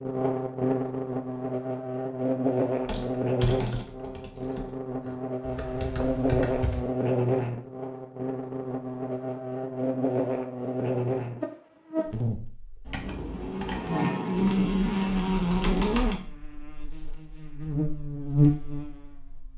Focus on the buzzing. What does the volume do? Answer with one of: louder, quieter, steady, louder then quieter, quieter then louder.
steady.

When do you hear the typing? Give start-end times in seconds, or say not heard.
2.9-6.8, 12.8-16.1.